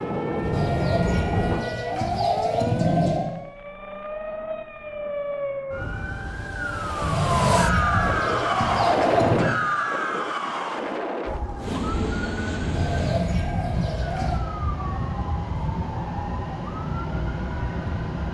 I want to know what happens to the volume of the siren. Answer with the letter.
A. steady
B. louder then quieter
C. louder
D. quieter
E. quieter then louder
B.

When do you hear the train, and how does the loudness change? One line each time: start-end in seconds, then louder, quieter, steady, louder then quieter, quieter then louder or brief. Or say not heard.
0.0-1.7 brief
11.6-18.2 steady.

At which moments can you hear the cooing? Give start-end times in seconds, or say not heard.
0.4-3.3, 7.0-9.5, 12.6-14.4.